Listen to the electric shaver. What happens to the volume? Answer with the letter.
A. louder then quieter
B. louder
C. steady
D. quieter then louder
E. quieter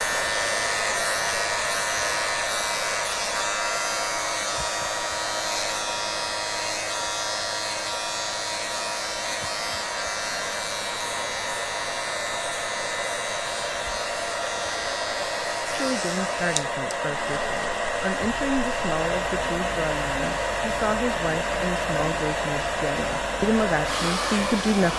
E.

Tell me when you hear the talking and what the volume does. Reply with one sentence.
The talking can be heard from 15.7 to 24.9 s, getting louder.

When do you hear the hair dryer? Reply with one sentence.
The hair dryer can be heard from 0.0 to 24.9 s.